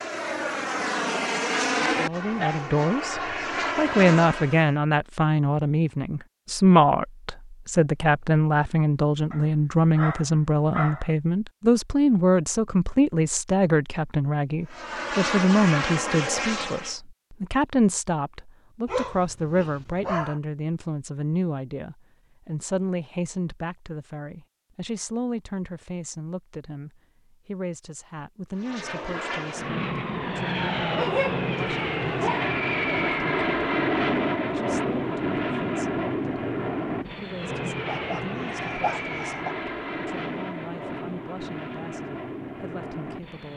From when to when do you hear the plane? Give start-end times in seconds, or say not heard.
0.0-4.7, 14.7-16.9, 28.6-43.5.